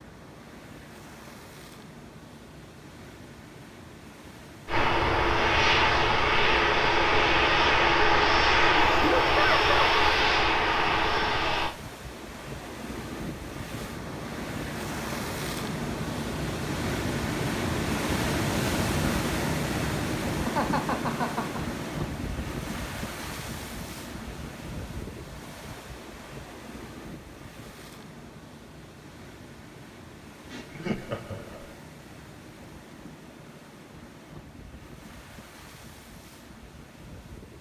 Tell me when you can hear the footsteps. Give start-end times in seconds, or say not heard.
not heard.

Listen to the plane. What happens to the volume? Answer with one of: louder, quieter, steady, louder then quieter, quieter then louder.
steady.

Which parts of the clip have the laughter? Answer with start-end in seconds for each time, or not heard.
8.9-9.8, 20.4-21.6, 30.5-31.8.